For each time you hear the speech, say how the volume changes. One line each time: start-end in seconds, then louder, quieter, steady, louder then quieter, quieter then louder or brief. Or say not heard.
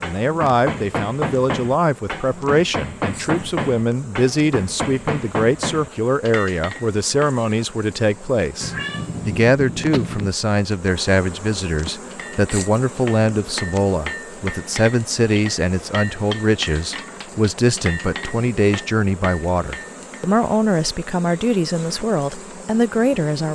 0.0-23.5 steady.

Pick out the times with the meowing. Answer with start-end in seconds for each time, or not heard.
8.6-10.3.